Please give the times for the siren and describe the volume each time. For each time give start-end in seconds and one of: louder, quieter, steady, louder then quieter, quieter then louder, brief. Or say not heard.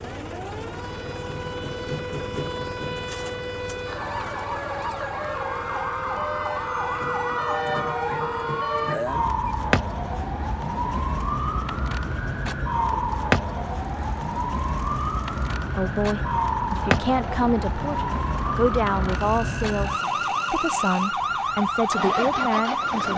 0.0-23.1 louder.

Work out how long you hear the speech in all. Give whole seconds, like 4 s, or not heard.
7 s.